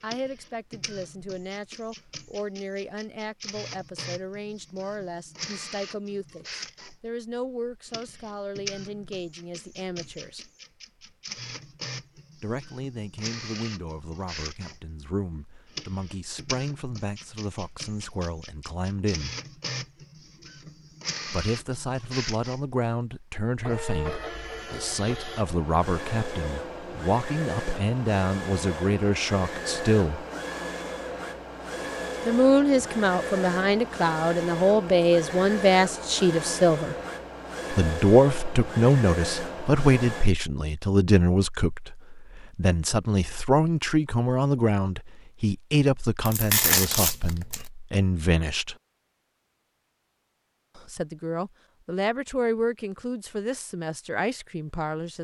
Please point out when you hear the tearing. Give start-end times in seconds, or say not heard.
46.2-47.6.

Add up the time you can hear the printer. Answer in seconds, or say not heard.
40 s.